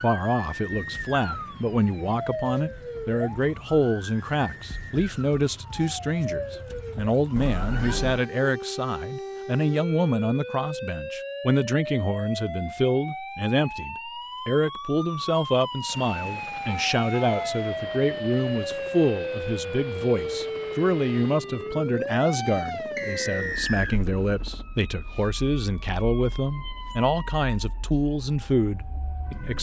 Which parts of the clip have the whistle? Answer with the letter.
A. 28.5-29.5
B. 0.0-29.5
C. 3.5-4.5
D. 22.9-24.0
D.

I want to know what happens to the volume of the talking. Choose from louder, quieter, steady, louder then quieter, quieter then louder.
steady.